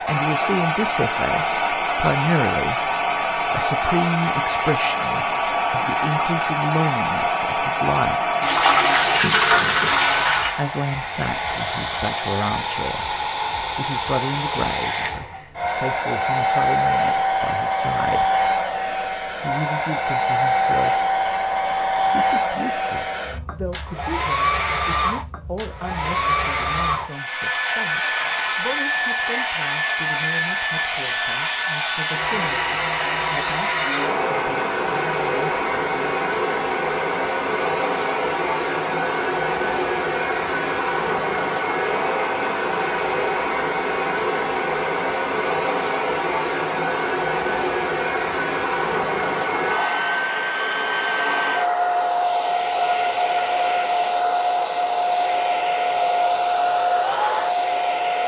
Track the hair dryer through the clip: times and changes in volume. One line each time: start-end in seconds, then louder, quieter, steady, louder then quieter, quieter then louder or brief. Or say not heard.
0.0-58.2 steady.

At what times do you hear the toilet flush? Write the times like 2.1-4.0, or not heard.
8.4-10.6.